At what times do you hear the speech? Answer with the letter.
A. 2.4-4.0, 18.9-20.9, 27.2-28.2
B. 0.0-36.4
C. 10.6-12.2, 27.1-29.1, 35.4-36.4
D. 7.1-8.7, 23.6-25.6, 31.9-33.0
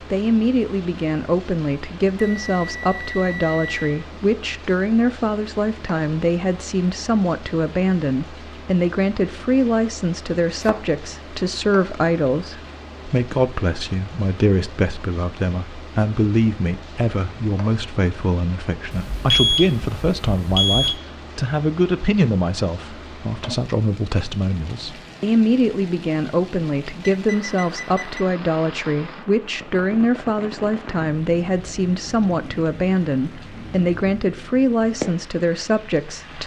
B.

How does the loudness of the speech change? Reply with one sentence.
The loudness of the speech stays about the same.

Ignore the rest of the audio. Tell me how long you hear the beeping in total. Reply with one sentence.
The beeping can be heard for 5 seconds in total.